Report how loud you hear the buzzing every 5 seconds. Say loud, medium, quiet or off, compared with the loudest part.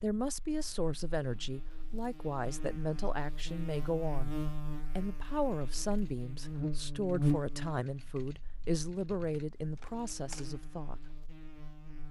medium, loud, quiet.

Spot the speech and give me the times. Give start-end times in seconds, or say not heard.
0.0-4.3, 5.0-11.2.